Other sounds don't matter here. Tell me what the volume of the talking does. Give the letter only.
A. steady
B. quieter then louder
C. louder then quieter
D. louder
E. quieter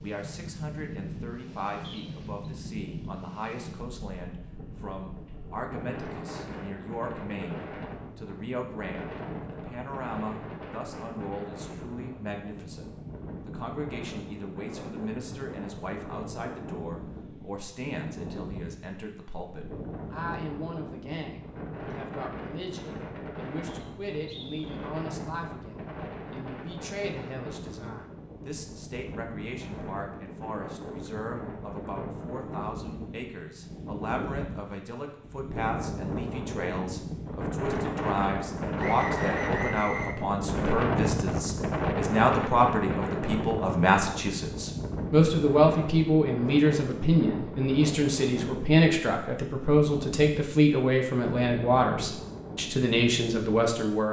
D.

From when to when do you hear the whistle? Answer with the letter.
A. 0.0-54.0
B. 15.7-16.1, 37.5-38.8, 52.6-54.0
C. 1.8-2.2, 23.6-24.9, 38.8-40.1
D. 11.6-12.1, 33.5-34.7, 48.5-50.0
C.